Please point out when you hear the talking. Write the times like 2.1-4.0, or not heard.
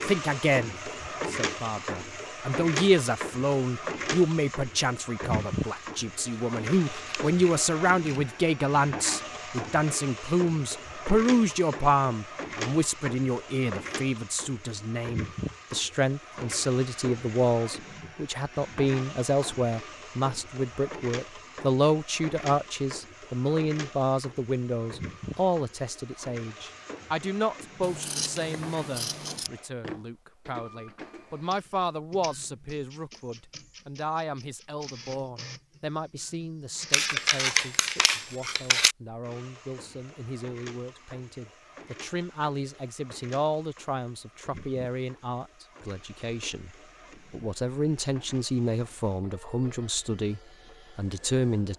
0.1-51.7.